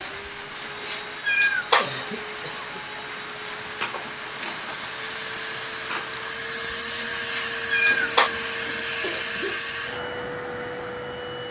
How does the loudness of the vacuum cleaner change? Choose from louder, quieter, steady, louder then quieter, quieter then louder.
louder.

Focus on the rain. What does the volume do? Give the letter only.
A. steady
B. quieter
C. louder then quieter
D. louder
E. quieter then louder
A.